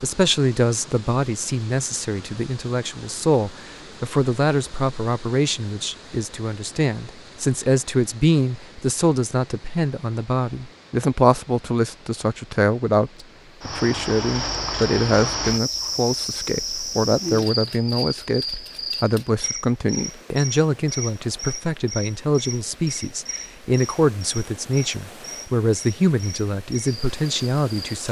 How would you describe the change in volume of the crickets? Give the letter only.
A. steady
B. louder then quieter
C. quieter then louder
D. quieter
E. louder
D.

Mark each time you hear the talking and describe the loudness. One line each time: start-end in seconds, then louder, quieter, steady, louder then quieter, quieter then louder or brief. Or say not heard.
0.0-28.0 steady.